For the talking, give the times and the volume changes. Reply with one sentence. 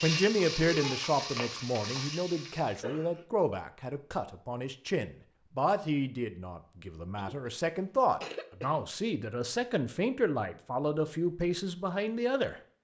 You can hear the talking from 0.0 to 12.6 s, at a steady volume.